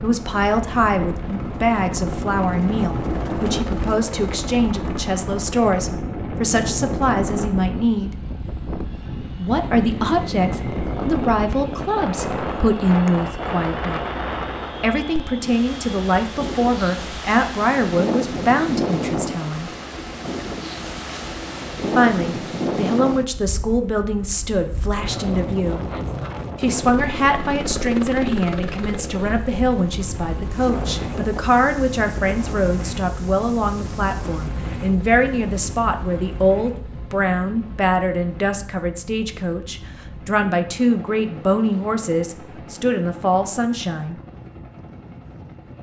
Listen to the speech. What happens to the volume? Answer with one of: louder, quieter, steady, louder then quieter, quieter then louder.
steady.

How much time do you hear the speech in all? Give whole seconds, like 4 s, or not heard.
39 s.